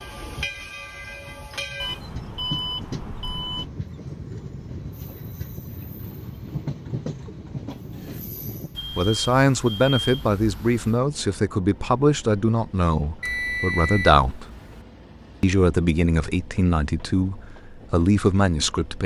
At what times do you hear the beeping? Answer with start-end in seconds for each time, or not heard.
1.8-3.7, 8.8-11.0, 13.2-14.8.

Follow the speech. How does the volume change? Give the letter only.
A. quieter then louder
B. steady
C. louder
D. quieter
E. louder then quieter
B.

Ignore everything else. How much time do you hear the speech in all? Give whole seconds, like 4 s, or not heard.
9 s.